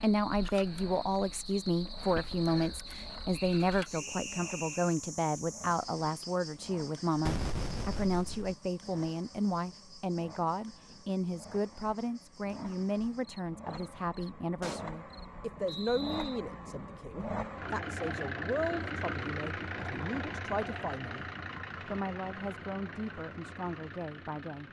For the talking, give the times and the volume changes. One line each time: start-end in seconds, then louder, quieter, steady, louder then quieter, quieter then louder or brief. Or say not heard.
0.0-24.6 quieter.